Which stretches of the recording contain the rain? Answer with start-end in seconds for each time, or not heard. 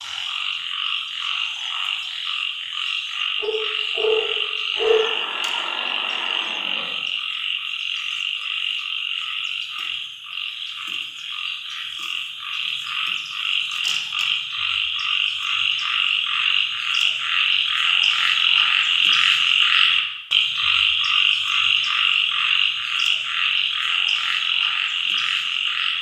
not heard.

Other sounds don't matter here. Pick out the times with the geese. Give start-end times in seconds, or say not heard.
not heard.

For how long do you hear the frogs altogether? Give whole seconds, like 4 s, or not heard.
26 s.